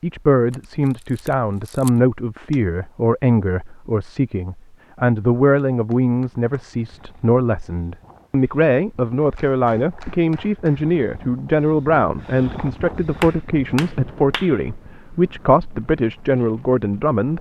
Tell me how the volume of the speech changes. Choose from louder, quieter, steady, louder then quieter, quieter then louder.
steady.